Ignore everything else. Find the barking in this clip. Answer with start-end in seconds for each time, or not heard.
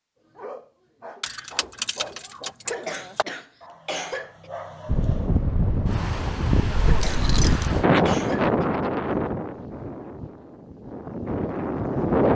0.2-5.4.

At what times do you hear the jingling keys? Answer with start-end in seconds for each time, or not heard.
1.2-3.2, 6.8-7.7.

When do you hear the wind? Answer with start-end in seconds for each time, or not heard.
4.8-12.3.